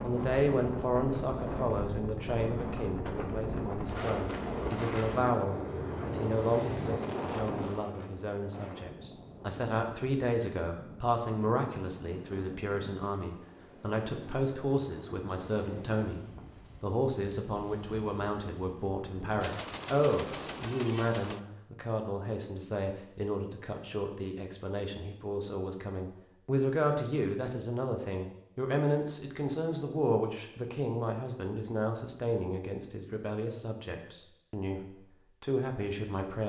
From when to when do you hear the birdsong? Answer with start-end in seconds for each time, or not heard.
not heard.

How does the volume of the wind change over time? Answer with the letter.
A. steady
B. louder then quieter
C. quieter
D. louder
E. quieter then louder
C.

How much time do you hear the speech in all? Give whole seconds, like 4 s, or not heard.
36 s.